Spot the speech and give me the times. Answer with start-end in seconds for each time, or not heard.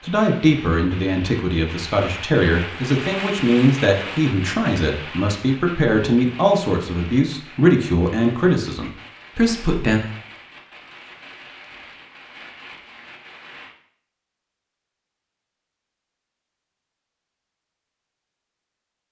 0.0-10.0.